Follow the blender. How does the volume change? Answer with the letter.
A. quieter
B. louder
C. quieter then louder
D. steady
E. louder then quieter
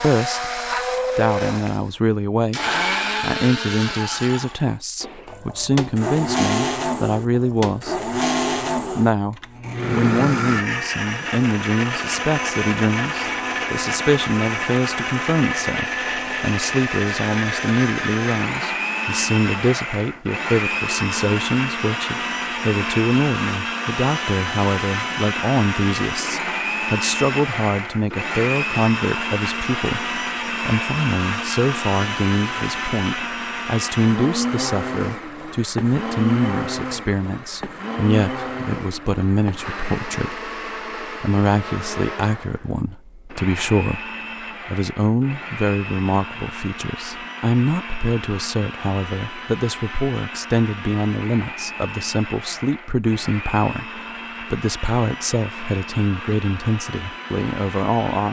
A.